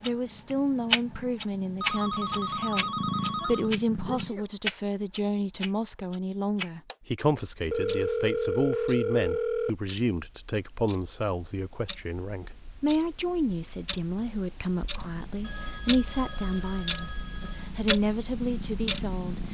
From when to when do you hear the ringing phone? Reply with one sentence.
The ringing phone can be heard from 1.8 to 3.7 s, from 7.7 to 9.7 s and from 15.4 to 17.7 s.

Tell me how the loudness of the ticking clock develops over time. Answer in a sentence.
The loudness of the ticking clock goes down, then up.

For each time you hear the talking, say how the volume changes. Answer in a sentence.
The talking can be heard from 0.0 to 19.5 s, at a steady volume.